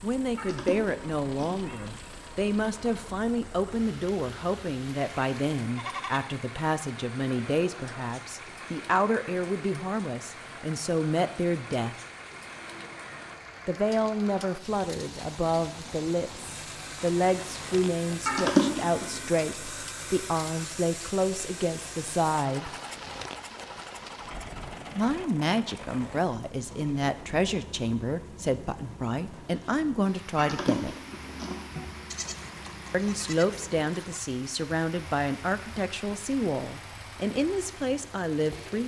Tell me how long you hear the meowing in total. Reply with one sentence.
You can hear the meowing for 4 seconds altogether.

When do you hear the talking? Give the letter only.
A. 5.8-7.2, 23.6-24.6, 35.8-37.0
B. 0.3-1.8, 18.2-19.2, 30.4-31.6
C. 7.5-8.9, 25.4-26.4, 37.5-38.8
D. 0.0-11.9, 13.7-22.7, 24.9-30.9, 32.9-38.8
D.